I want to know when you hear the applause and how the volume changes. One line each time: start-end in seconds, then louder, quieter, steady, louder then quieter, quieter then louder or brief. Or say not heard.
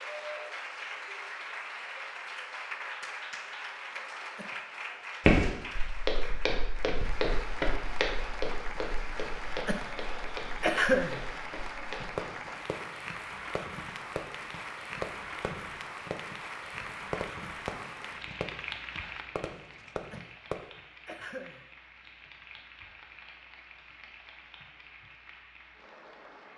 0.0-26.5 quieter.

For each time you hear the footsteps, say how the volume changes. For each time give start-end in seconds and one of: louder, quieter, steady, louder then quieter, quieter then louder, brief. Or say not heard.
5.2-12.2 quieter.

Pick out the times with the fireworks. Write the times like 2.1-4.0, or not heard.
12.0-20.6.